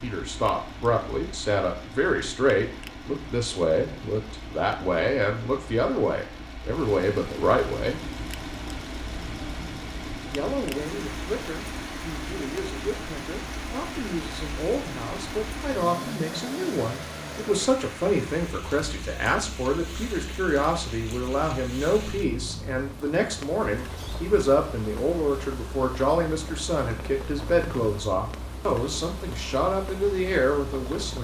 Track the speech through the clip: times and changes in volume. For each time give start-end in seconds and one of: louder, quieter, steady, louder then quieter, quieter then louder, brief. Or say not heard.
0.0-8.0 steady
10.3-31.1 louder.